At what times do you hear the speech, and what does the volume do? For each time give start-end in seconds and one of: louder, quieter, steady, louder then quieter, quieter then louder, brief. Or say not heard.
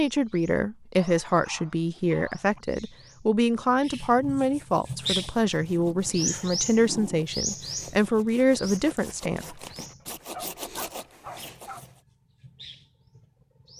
0.0-9.6 steady.